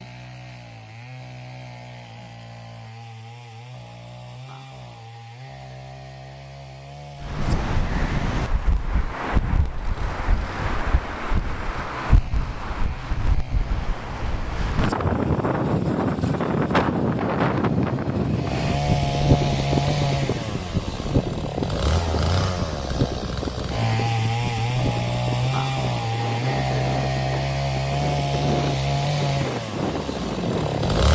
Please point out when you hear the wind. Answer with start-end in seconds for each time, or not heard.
7.2-31.1.